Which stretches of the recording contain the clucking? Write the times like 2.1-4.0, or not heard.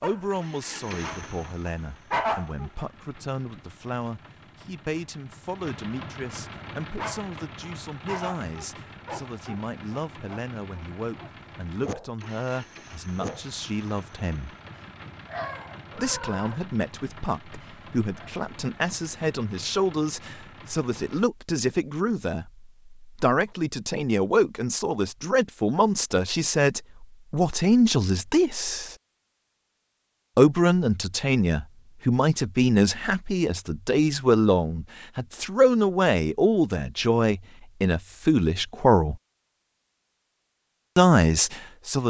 not heard.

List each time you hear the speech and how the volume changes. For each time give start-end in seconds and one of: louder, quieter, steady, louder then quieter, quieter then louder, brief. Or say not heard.
0.0-14.6 steady
15.9-28.9 louder
30.4-39.1 steady
41.0-42.0 brief.